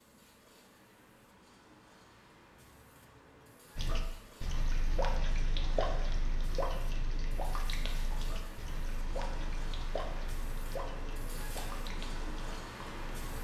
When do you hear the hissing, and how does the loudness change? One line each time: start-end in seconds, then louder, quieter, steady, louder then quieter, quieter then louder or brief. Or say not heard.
0.0-13.3 louder.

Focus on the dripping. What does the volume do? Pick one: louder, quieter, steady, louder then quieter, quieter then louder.
quieter.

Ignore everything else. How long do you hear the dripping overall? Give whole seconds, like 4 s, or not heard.
9 s.